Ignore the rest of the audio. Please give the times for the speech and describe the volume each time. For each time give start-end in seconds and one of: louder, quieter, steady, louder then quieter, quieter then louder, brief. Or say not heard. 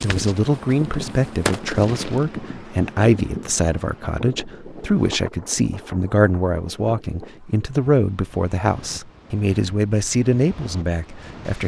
0.0-11.6 steady.